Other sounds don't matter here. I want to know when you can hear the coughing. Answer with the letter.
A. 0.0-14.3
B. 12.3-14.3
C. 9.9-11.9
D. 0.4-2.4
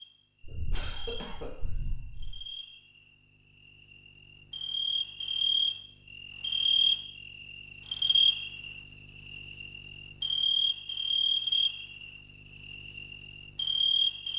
D.